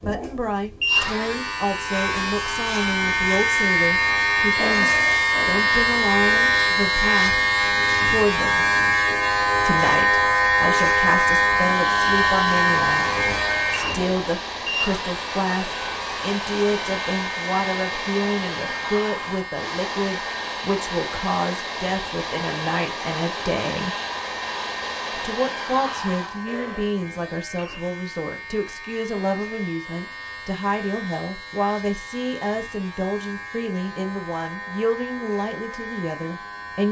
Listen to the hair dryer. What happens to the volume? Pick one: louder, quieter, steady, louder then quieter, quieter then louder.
steady.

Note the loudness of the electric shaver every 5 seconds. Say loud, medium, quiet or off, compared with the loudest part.
loud, loud, loud, quiet, quiet, quiet, quiet, quiet.